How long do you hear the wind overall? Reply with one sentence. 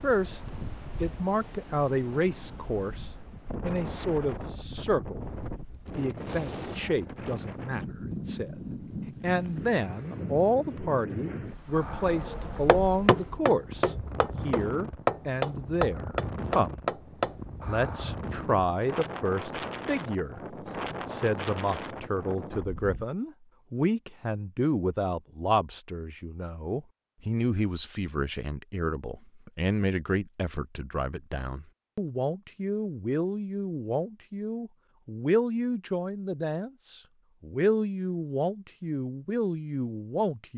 The wind can be heard for 23 seconds in total.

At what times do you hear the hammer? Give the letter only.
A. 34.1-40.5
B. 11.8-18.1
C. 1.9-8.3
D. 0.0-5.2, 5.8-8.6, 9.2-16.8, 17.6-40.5
B.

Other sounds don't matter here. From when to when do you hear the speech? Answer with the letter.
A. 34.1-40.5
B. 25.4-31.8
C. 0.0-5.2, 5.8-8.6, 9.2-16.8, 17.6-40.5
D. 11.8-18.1
C.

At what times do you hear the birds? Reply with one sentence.
The birds can't be heard in this clip.